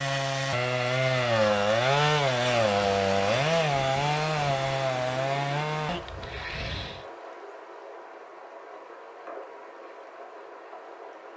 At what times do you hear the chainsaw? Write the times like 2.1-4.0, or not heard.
0.0-7.0.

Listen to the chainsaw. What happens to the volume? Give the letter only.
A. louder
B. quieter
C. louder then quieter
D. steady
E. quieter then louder
B.